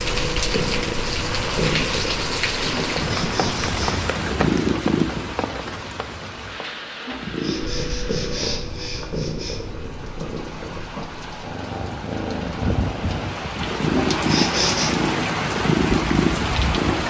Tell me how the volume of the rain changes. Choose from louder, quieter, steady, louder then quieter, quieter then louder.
quieter then louder.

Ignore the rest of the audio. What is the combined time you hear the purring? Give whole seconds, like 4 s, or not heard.
15 s.